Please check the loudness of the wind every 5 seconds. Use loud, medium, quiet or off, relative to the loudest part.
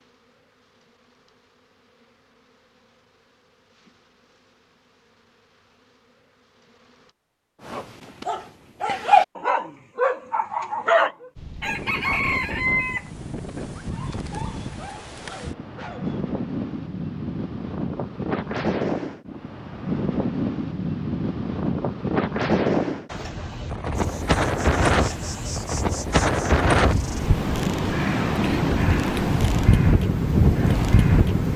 off, off, quiet, medium, loud, loud, loud.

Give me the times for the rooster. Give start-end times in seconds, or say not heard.
11.6-13.1.